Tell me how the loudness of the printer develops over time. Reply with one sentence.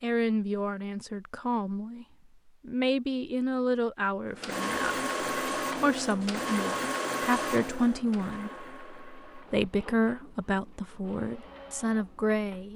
The loudness of the printer goes down.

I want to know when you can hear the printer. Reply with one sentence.
The printer can be heard from 4.3 to 12.7 s.